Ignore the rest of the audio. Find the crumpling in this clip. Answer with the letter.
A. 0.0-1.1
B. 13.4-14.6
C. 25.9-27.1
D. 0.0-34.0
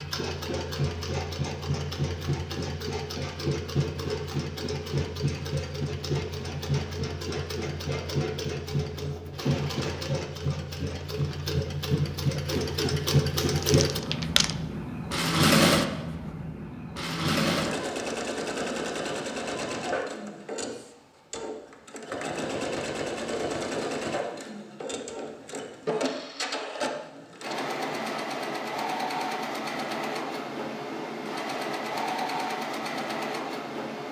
B.